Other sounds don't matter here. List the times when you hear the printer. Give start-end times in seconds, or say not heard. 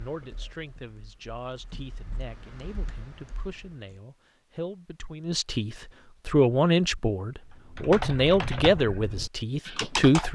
not heard.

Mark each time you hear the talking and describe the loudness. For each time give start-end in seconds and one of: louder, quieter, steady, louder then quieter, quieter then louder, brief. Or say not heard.
0.0-10.3 louder.